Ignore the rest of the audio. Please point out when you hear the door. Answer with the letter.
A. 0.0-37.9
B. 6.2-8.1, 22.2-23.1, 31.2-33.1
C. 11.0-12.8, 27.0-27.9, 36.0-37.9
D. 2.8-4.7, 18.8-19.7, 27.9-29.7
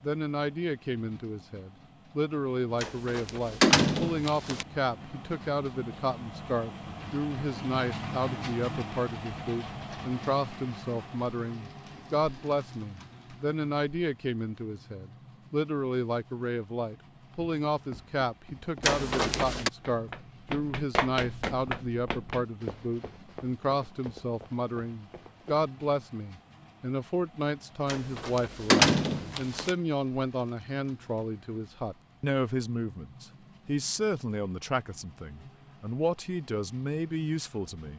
D.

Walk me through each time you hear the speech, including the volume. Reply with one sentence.
The speech can be heard from 0.0 to 37.9 s, at a steady volume.